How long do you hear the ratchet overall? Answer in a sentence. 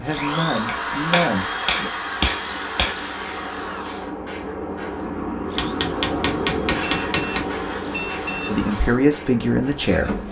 The ratchet can't be heard in this clip.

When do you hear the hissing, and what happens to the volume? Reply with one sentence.
The hissing can be heard from 0.1 to 10.2 s, getting louder then quieter.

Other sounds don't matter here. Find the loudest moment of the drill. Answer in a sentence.
The volume of the drill peaks at 1 second.